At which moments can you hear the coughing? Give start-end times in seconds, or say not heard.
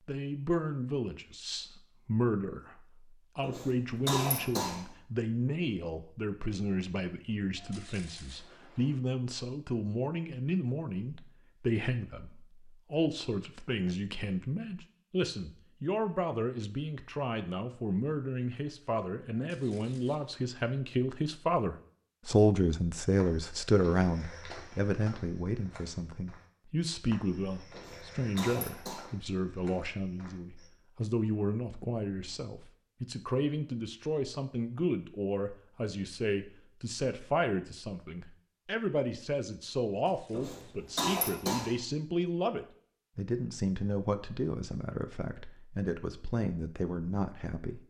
3.4-4.8, 27.7-29.1, 40.3-41.8.